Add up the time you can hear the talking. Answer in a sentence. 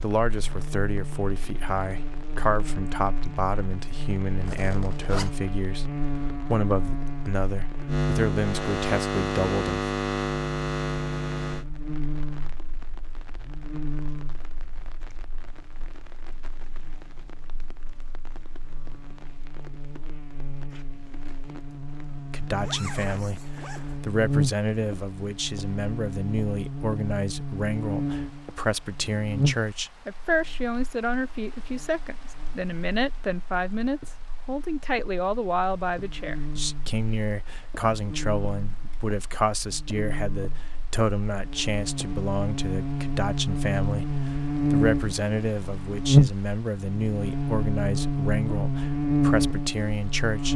The talking can be heard for 38 seconds in total.